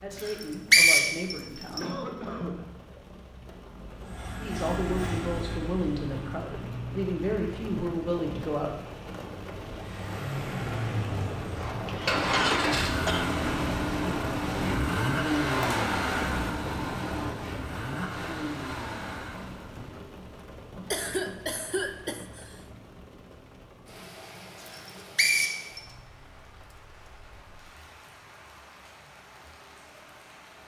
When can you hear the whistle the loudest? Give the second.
1 s.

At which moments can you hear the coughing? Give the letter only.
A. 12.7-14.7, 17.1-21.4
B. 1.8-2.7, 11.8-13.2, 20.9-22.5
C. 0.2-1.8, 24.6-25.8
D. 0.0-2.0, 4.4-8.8
B.